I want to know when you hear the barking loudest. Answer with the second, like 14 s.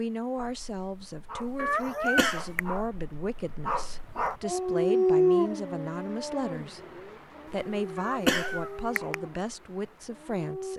5 s.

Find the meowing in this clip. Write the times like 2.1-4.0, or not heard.
1.6-2.6, 8.0-9.2.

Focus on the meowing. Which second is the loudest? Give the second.
2 s.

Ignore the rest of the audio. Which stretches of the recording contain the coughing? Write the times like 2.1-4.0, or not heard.
1.4-2.8, 7.5-8.7.